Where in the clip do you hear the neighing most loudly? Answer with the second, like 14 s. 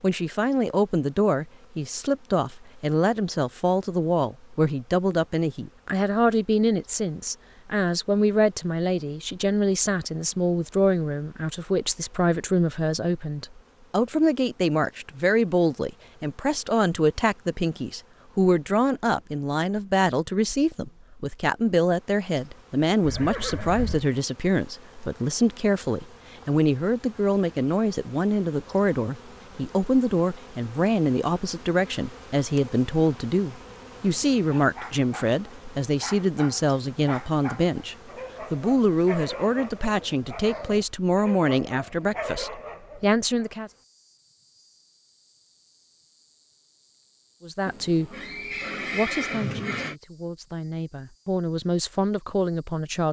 49 s.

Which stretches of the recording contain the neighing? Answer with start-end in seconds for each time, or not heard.
23.0-24.1, 47.6-50.0.